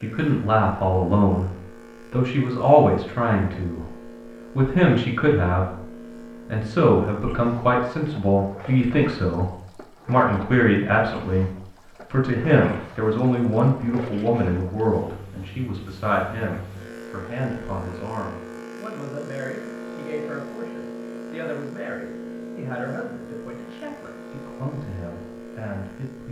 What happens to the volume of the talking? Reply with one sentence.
The loudness of the talking goes down.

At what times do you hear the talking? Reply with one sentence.
The talking can be heard from 0.0 to 26.2 s.